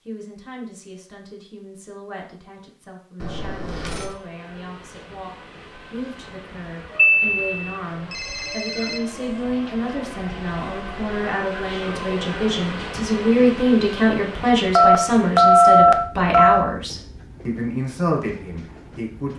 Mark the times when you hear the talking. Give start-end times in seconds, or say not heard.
0.1-19.3.